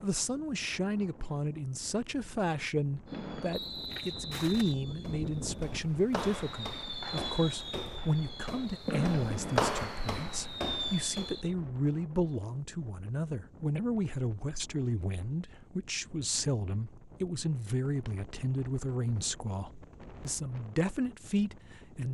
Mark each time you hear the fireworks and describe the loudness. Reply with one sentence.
The fireworks can be heard from 3.0 to 11.6 s, getting louder.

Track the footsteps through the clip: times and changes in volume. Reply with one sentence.
The footsteps can be heard from 3.9 to 11.5 s, getting louder then quieter.